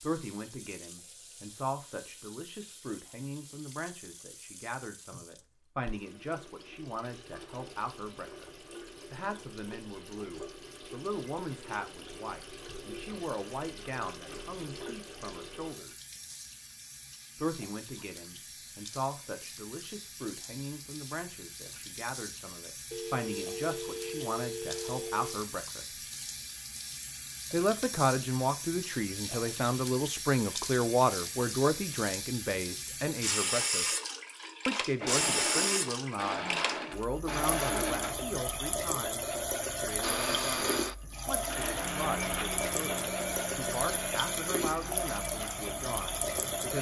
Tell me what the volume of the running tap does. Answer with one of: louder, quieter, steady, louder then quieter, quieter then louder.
louder.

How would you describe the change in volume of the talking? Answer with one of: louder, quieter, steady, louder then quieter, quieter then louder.
louder then quieter.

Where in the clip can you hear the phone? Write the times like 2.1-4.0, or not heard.
22.9-25.4.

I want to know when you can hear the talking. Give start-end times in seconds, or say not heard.
0.0-8.5, 9.1-15.9, 17.4-25.9, 27.5-33.9, 34.6-46.7.